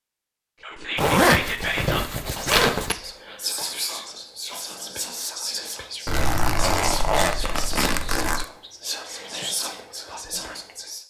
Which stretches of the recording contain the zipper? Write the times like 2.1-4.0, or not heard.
0.9-3.0, 6.0-8.4.